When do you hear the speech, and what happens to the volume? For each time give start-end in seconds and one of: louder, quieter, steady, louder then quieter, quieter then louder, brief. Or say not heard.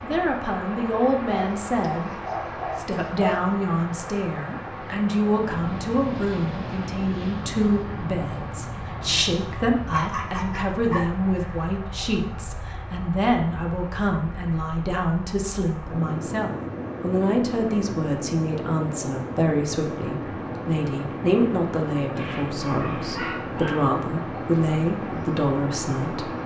0.0-26.3 steady.